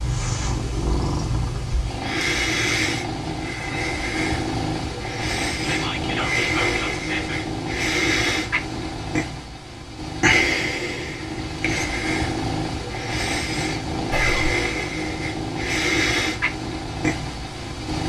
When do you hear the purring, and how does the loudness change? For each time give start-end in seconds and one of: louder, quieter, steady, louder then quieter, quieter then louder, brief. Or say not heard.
0.0-18.0 steady.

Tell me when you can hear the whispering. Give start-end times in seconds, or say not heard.
5.6-7.5, 14.1-14.6.